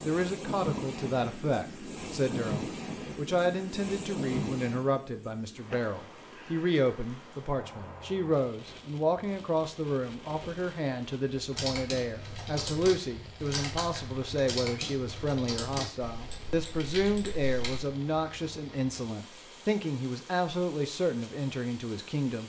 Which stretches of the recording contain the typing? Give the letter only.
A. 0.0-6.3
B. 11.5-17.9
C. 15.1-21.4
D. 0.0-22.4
B.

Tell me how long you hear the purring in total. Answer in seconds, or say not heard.
not heard.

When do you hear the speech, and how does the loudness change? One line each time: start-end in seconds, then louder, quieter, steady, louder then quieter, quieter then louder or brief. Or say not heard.
0.0-22.4 steady.